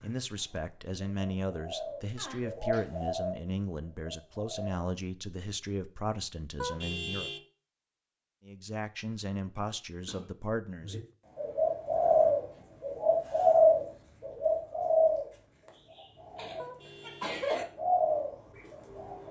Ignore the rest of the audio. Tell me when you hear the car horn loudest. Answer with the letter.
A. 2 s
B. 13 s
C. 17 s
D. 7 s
D.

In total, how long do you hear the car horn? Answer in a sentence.
The car horn can be heard for 2 seconds in total.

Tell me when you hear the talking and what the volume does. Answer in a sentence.
You can hear the talking from 0.0 to 7.3 s, at a steady volume; and briefly from 8.4 to 10.9 s.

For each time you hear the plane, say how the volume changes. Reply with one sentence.
You can't hear the plane here.